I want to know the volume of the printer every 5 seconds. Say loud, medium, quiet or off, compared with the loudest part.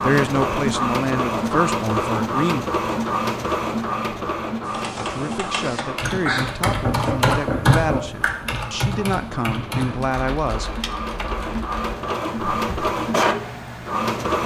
loud, medium, loud.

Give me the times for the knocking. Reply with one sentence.
You can hear the knocking from 6.7 to 8.1 s.